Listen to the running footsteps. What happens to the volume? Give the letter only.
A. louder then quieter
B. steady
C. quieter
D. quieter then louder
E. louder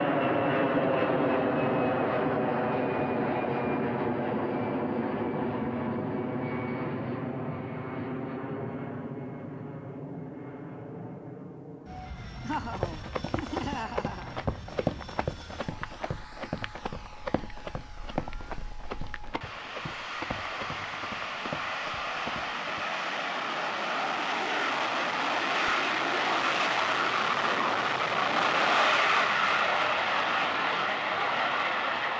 C.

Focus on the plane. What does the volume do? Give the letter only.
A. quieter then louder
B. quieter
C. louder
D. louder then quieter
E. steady
A.